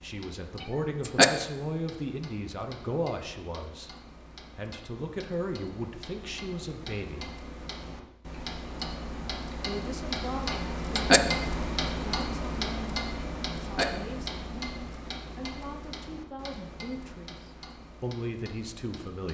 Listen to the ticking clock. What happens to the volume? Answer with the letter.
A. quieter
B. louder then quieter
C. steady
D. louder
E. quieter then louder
B.